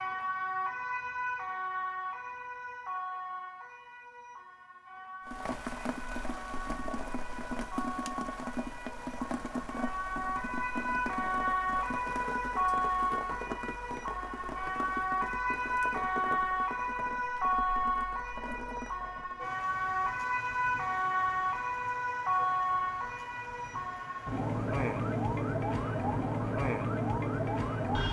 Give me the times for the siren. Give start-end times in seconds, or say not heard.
0.0-28.0.